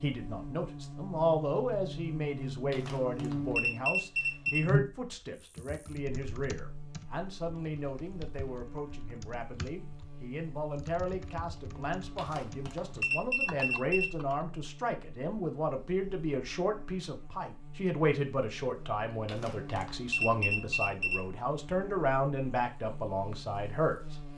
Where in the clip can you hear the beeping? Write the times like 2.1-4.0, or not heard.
2.7-4.7, 12.2-14.1, 19.2-21.2.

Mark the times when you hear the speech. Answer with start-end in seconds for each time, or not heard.
0.0-24.1.